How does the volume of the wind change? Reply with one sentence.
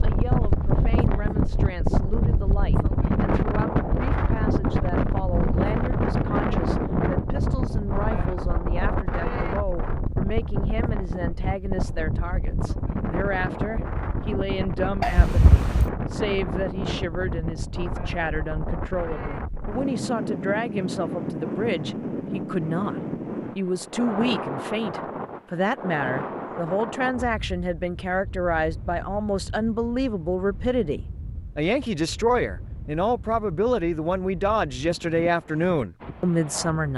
The loudness of the wind goes down.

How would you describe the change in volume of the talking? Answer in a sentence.
The loudness of the talking goes up.